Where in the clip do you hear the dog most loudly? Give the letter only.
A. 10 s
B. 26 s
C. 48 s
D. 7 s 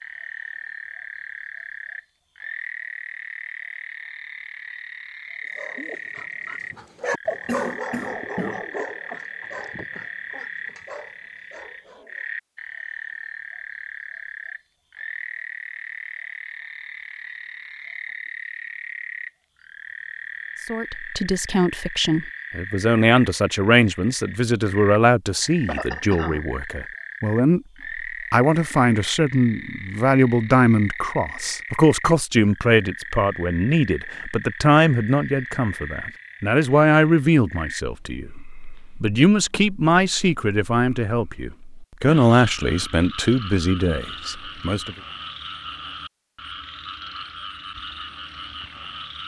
D.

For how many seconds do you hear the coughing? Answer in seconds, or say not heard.
2 s.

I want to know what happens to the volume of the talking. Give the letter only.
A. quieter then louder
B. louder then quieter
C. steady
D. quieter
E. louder
C.